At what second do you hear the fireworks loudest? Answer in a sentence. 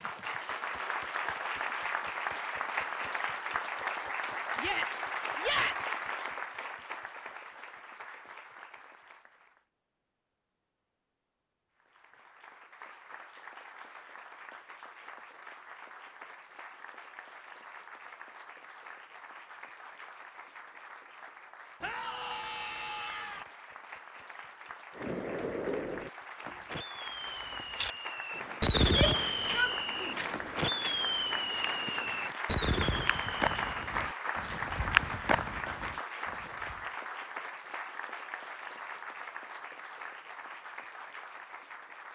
The volume of the fireworks peaks at 29 seconds.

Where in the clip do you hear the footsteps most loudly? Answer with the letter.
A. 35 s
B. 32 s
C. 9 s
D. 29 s
A.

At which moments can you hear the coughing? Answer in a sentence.
You can't hear the coughing here.